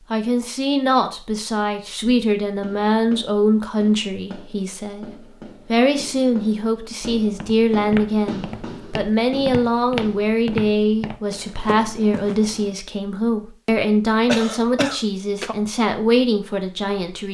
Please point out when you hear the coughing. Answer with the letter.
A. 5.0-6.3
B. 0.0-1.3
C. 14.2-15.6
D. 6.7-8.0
C.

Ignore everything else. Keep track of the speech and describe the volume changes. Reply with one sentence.
The loudness of the speech stays about the same.